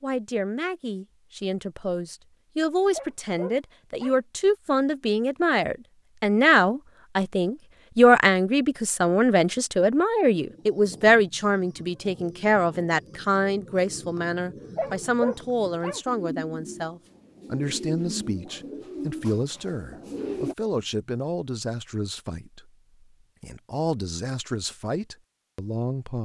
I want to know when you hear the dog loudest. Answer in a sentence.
The volume of the dog peaks at 15 seconds.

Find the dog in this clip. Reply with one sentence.
The dog can be heard from 2.9 to 4.2 s and from 14.8 to 16.0 s.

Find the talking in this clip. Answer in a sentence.
The talking can be heard from 0.0 to 22.7 s and from 23.4 to 26.2 s.